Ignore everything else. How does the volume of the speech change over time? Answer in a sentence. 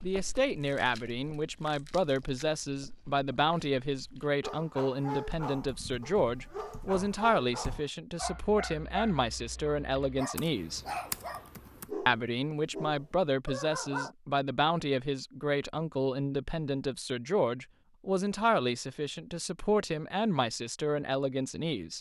The volume of the speech stays about the same.